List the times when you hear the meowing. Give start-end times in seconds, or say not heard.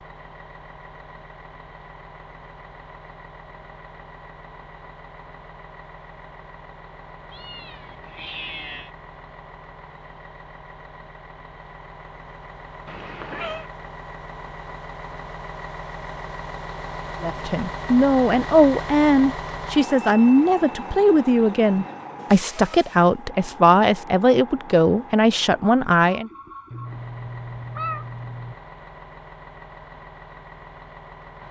7.3-8.9, 12.8-13.7, 26.7-28.6.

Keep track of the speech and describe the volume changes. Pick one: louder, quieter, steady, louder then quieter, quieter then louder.
steady.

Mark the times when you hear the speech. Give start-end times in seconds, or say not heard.
17.2-26.3.